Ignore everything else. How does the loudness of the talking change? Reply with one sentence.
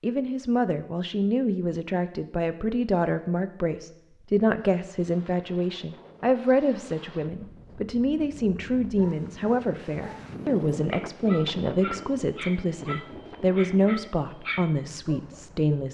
The loudness of the talking stays about the same.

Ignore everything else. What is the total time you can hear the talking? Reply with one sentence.
You can hear the talking for 16 seconds altogether.